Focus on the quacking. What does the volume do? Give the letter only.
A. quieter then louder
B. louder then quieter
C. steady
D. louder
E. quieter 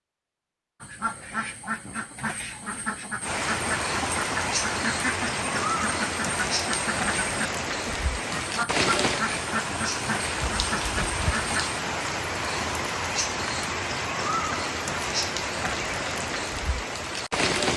C.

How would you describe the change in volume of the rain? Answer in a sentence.
The loudness of the rain stays about the same.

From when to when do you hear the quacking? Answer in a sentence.
You can hear the quacking from 0.8 to 11.8 s.